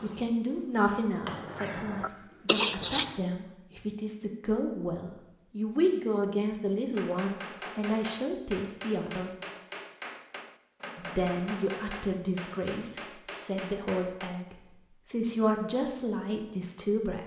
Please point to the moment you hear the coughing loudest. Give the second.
3 s.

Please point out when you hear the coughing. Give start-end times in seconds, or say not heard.
1.2-3.1.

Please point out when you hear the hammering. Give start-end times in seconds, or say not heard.
6.9-14.4.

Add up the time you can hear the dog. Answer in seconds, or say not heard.
not heard.